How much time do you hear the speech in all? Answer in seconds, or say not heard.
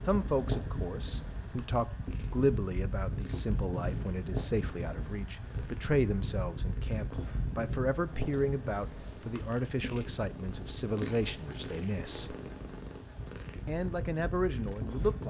14 s.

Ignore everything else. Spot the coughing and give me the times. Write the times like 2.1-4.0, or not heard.
not heard.